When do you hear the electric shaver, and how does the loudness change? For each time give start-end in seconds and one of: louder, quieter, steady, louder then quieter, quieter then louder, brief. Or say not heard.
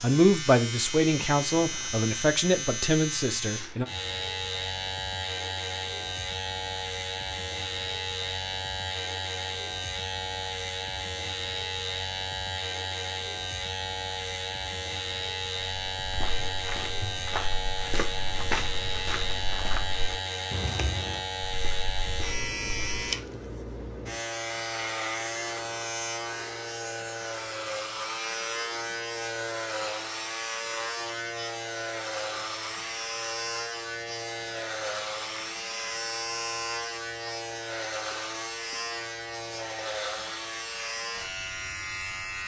0.0-42.4 steady.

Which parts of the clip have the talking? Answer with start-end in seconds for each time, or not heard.
0.0-3.9.